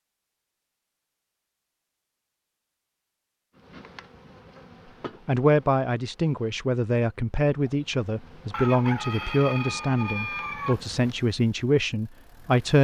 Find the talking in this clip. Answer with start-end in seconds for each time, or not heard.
5.2-12.7.